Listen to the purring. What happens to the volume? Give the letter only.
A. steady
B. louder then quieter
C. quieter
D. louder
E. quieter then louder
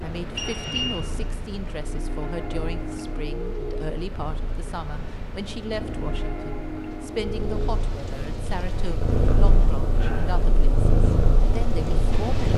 D.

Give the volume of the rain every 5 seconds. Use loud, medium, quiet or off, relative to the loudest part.
loud, loud, medium.